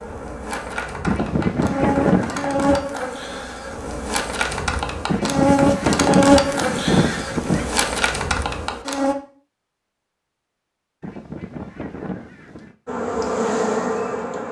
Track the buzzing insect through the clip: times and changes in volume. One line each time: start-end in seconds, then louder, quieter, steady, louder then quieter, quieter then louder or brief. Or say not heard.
0.0-9.2 louder then quieter
12.8-14.4 brief.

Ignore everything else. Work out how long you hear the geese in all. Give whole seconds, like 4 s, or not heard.
6 s.